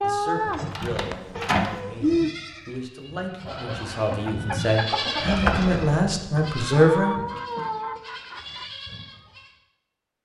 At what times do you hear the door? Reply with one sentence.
You can hear the door from 0.5 to 1.8 s and from 5.2 to 6.5 s.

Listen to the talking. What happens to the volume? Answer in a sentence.
The loudness of the talking goes up.